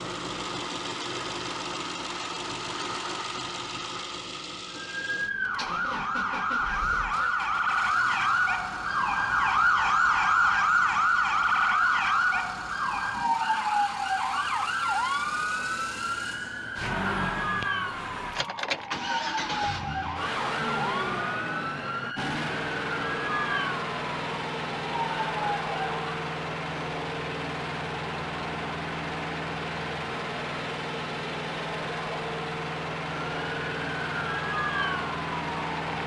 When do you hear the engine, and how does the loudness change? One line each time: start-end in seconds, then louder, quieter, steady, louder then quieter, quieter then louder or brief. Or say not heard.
0.0-36.0 quieter then louder.